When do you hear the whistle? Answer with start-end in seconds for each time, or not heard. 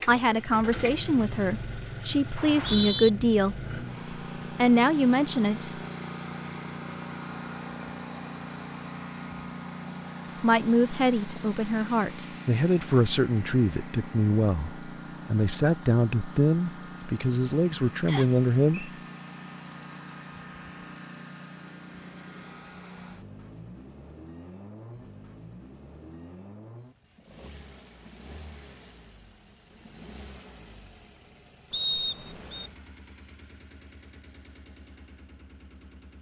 2.4-3.1, 18.1-18.9, 31.7-32.7.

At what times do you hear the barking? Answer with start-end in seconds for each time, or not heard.
not heard.